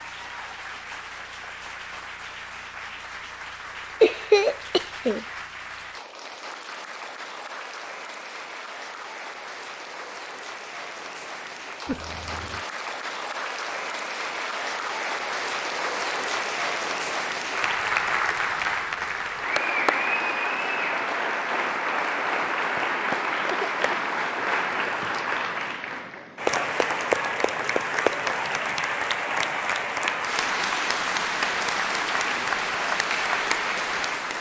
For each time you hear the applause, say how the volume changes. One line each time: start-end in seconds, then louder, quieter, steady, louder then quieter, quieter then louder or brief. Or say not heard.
0.0-34.3 louder.